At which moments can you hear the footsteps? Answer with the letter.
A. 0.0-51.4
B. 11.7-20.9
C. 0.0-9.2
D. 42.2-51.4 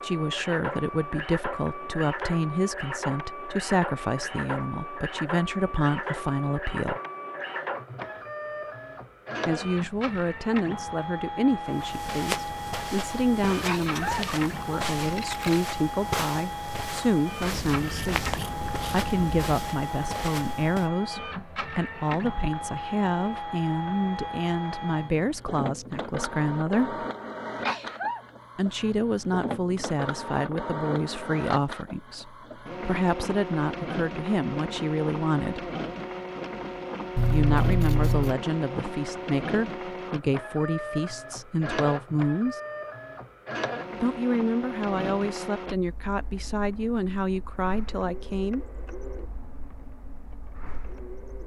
B.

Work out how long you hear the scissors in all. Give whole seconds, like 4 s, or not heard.
5 s.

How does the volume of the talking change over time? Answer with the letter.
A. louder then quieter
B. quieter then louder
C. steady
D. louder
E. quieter
C.